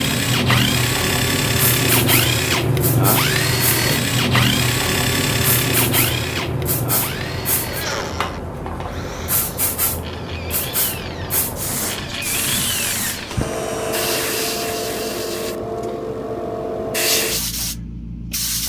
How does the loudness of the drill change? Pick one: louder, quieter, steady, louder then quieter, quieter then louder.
quieter then louder.